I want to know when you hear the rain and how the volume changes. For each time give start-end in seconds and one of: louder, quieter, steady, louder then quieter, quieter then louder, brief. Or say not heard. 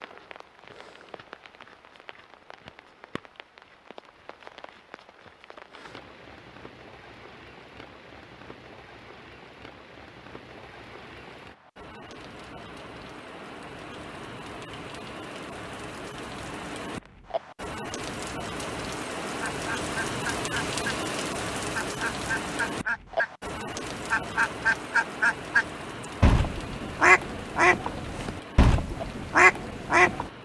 0.0-30.4 louder then quieter.